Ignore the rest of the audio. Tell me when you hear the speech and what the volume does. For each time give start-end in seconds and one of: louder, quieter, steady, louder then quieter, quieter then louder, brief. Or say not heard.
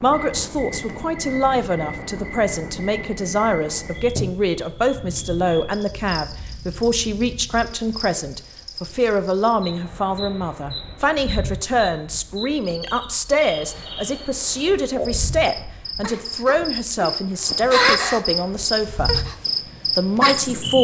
0.0-19.1 steady
19.9-20.7 brief.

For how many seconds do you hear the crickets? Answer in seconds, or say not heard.
21 s.